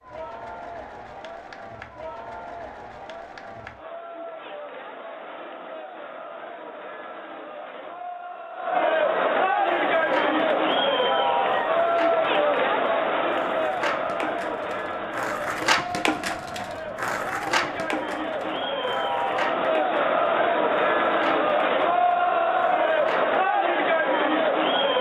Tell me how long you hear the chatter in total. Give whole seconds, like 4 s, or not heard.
25 s.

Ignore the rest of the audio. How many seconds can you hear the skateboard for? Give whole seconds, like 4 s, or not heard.
14 s.